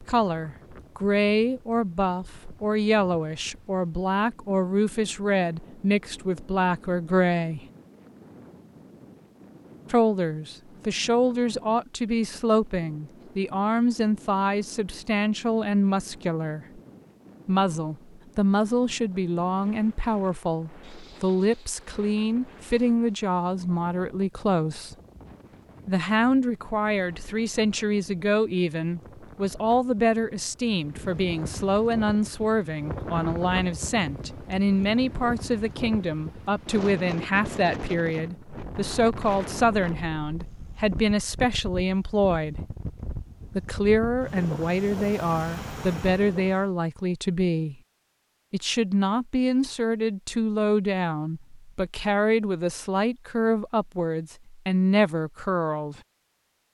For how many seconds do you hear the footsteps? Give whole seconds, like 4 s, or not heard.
not heard.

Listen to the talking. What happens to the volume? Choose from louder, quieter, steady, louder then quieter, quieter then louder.
steady.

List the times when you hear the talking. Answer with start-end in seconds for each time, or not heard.
0.0-7.7, 9.9-16.8, 17.4-24.9, 25.9-42.6, 43.5-47.8, 48.5-56.0.